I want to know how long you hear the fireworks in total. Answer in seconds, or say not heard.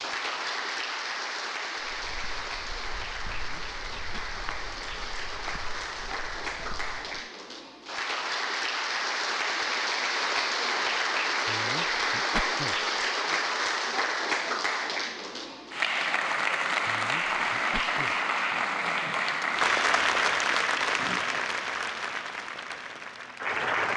not heard.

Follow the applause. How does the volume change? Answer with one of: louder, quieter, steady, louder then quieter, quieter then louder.
louder.